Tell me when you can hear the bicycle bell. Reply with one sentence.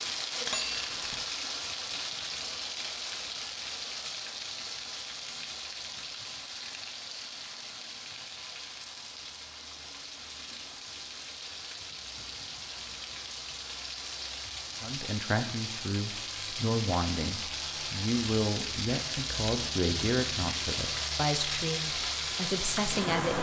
The bicycle bell can be heard from 0.4 to 1.2 s.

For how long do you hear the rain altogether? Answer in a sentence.
The rain can be heard for 23 seconds in total.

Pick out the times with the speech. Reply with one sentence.
The speech can be heard from 14.8 to 23.3 s.